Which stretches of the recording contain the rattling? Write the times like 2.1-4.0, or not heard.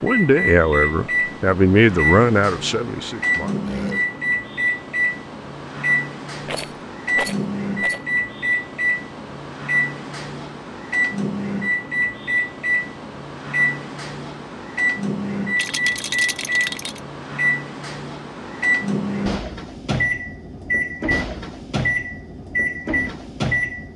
6.5-8.0, 15.6-17.0.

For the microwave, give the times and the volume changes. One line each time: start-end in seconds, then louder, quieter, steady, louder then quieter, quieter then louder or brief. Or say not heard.
0.0-23.9 steady.